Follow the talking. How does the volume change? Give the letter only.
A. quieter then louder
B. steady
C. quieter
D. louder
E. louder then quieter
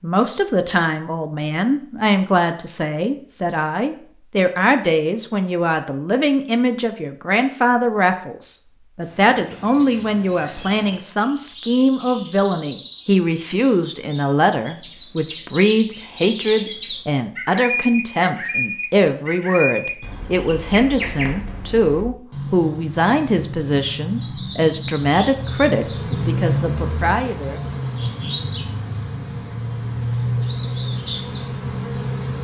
B.